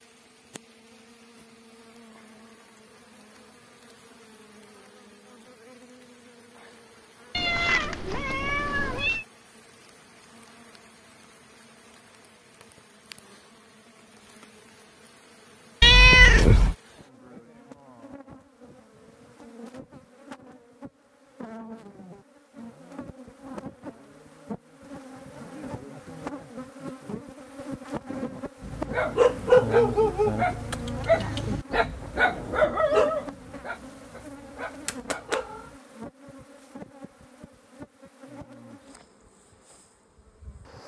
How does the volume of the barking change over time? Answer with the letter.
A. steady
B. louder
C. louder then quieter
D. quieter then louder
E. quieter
E.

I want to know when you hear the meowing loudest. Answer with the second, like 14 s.
16 s.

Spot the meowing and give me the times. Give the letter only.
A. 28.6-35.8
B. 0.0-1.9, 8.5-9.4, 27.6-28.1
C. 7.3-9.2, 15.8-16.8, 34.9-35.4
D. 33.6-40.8
C.